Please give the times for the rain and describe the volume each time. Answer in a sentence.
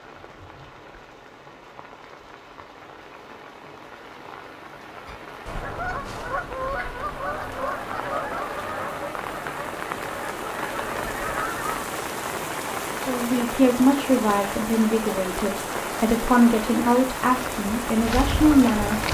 The rain can be heard from 0.0 to 19.0 s, getting louder.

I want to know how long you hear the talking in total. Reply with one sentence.
You can hear the talking for 6 seconds altogether.